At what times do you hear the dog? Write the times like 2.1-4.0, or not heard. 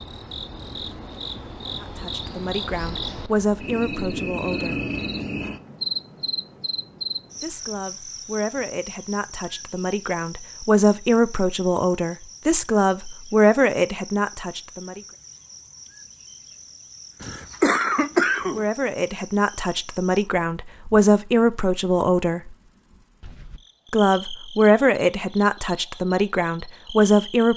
not heard.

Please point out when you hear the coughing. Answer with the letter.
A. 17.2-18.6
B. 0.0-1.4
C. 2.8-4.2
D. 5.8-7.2
A.